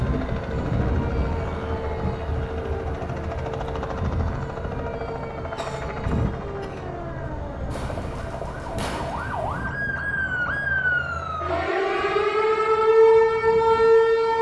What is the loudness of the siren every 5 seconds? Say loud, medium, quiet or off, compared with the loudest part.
quiet, quiet, loud.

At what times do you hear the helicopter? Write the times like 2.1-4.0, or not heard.
0.0-11.7.